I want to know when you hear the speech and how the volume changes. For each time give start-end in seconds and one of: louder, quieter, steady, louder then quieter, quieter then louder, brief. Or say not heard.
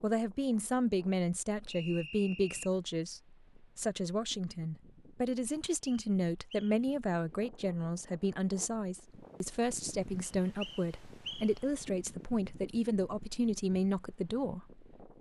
0.0-15.1 steady.